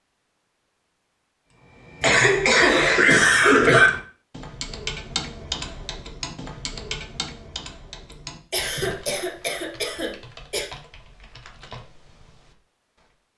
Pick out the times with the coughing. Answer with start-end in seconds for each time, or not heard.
2.0-3.9, 8.5-10.7.